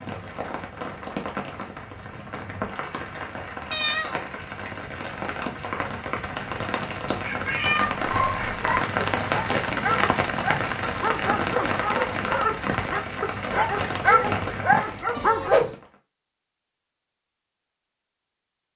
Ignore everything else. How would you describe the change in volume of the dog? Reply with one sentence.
The loudness of the dog goes up.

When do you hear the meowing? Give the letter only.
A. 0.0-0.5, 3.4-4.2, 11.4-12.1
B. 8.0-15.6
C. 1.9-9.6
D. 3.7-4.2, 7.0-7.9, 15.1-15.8
D.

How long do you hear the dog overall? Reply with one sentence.
The dog can be heard for 8 seconds in total.